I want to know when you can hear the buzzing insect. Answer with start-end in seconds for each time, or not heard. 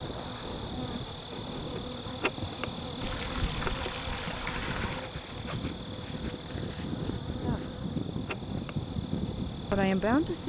0.0-10.4.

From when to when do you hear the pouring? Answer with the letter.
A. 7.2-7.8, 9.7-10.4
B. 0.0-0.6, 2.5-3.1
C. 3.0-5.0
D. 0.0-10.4
C.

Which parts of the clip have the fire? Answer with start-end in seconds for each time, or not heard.
not heard.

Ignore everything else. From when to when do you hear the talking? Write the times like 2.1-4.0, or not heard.
7.2-7.8, 9.7-10.4.